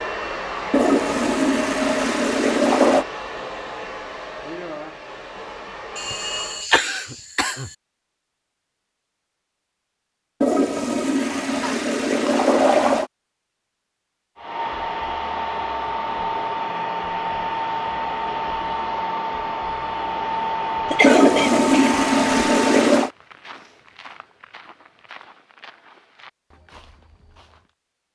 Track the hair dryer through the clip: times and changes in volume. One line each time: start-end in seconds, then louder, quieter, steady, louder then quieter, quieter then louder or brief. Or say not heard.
0.0-6.7 quieter
14.3-22.9 steady.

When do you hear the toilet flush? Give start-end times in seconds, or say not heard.
0.7-3.0, 10.4-13.1, 21.0-23.1.